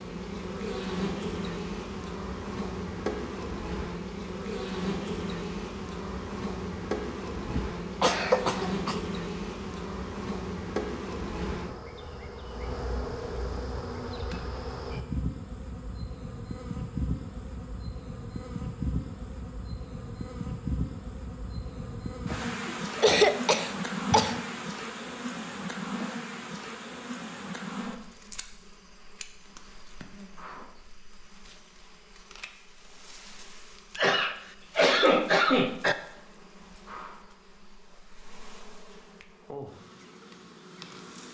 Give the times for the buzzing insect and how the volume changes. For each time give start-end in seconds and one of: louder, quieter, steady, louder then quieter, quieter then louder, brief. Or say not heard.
0.0-41.2 quieter.